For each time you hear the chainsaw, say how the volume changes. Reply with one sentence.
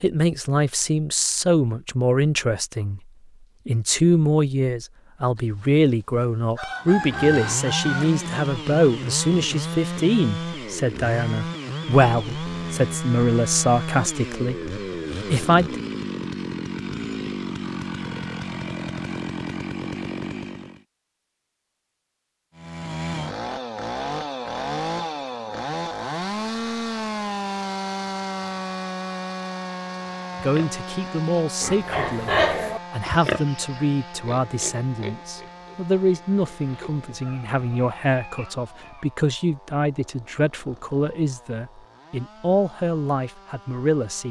You can hear the chainsaw from 6.8 to 20.9 s, at a steady volume; and from 22.6 to 44.2 s, getting quieter.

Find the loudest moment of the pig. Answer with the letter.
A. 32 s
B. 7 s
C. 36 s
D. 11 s
A.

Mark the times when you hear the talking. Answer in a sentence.
You can hear the talking from 0.0 to 3.0 s, from 3.6 to 15.8 s and from 30.4 to 44.2 s.